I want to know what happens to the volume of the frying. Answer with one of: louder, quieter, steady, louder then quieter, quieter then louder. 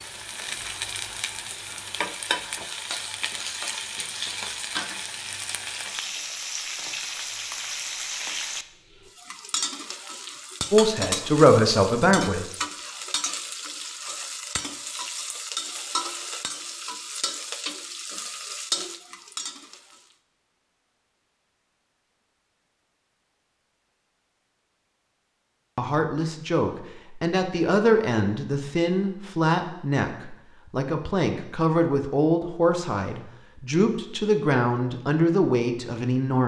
steady.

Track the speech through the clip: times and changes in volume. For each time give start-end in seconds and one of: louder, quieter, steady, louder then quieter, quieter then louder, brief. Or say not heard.
10.7-12.4 brief
25.8-36.4 steady.